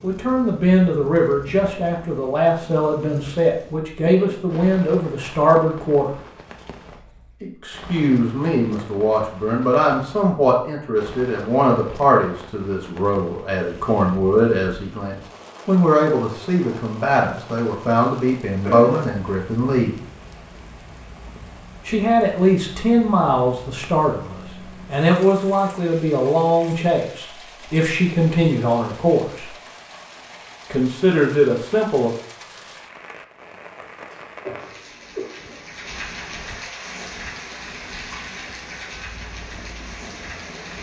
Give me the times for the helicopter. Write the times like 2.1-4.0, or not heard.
36.9-40.7.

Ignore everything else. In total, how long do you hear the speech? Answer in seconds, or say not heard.
28 s.